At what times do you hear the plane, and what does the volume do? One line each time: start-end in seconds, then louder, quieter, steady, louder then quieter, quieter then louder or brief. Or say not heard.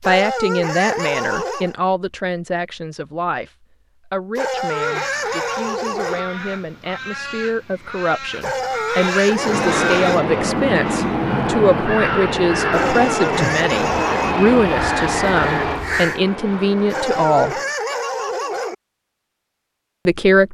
9.2-17.8 quieter.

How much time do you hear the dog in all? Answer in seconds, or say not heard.
9 s.